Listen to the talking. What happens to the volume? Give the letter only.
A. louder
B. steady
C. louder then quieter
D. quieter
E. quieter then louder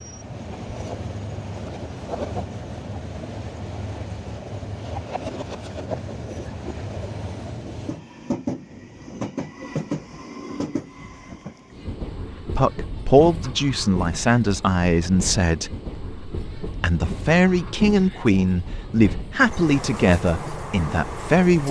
B.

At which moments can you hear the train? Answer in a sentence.
You can hear the train from 0.0 to 21.6 s.